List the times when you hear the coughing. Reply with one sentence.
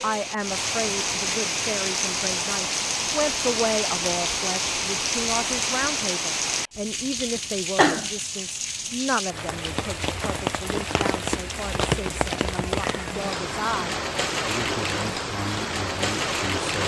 The coughing can be heard from 7.2 to 8.1 s.